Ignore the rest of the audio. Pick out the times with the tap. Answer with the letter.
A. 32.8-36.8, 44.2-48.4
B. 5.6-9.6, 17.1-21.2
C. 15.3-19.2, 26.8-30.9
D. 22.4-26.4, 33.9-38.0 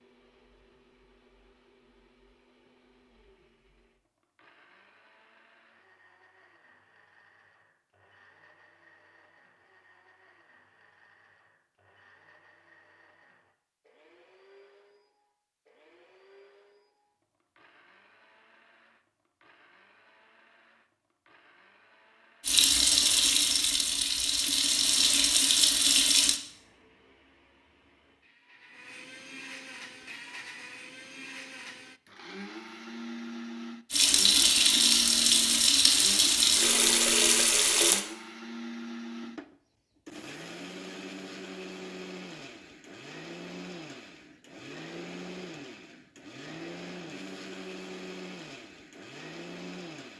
D.